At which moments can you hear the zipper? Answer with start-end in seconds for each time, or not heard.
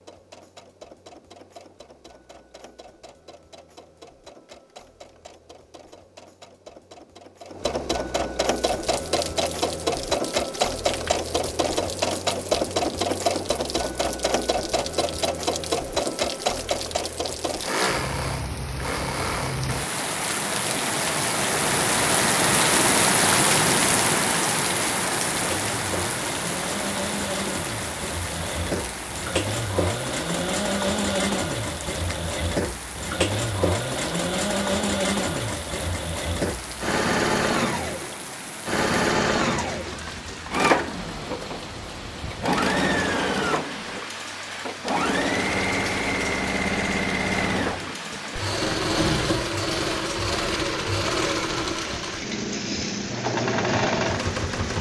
not heard.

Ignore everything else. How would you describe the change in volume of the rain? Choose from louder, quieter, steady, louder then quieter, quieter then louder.
louder then quieter.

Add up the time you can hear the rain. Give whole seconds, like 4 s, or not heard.
46 s.